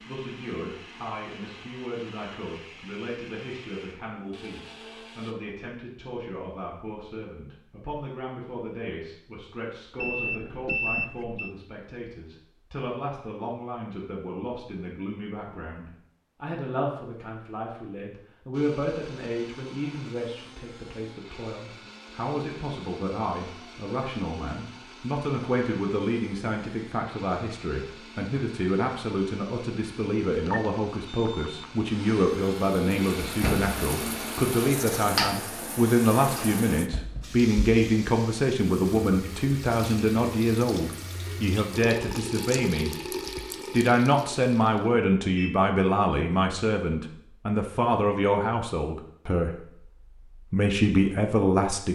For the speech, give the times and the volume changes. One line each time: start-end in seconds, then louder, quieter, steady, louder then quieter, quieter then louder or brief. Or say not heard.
0.1-51.9 louder.